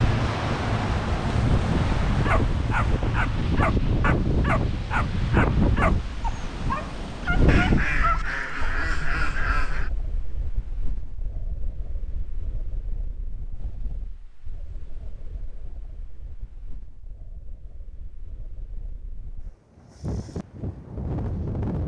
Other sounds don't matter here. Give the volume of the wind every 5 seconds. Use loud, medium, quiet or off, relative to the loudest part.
loud, loud, quiet, quiet, medium.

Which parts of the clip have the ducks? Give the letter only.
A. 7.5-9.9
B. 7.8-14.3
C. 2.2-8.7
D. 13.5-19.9
A.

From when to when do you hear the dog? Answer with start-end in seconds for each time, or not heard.
2.2-8.7.